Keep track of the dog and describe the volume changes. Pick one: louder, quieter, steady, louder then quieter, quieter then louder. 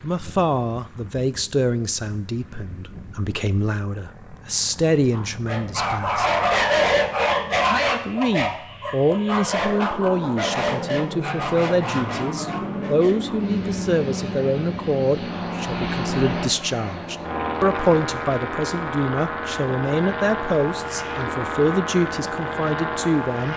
quieter.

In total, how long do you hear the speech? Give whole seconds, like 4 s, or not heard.
22 s.